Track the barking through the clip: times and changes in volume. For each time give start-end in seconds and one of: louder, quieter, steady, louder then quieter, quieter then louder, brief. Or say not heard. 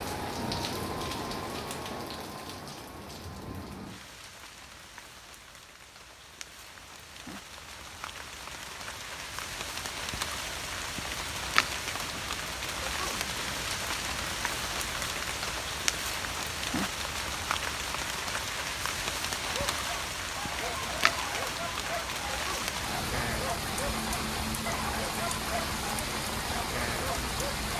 19.4-27.7 steady.